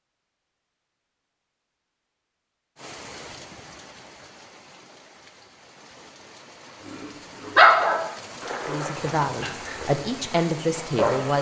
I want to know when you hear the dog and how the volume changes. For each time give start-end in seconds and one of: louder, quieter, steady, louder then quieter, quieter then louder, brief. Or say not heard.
6.9-11.3 quieter.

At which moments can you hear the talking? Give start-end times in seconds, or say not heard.
8.7-11.3.